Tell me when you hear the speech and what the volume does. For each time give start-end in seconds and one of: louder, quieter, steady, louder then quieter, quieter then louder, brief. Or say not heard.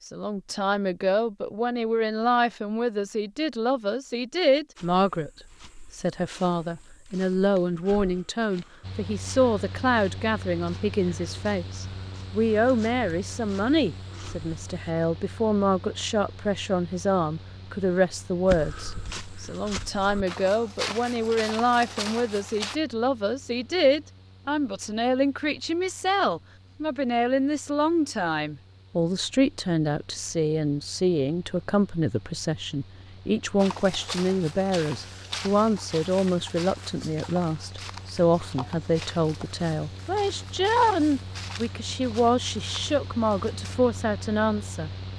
0.0-45.1 steady.